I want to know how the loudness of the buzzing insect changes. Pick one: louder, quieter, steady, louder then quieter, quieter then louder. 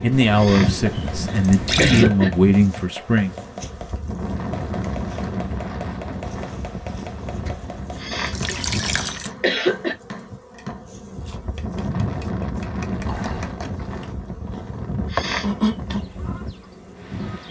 quieter then louder.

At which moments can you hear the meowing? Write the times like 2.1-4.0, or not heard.
not heard.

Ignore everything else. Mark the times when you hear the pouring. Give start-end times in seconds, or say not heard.
0.1-2.1, 8.3-9.3, 12.9-13.6.